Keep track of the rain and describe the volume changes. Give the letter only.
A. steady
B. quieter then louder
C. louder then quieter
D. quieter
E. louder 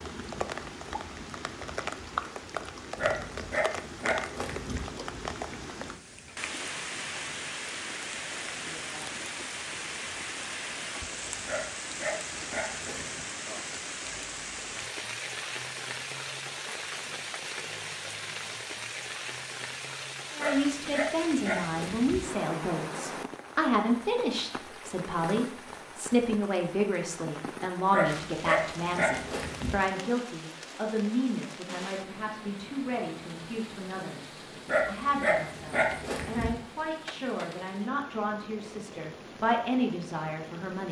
D.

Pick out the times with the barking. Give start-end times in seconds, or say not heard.
3.0-4.8, 11.4-13.2, 20.4-22.2, 27.9-29.8, 34.6-36.5.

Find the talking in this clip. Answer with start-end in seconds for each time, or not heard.
20.4-40.8.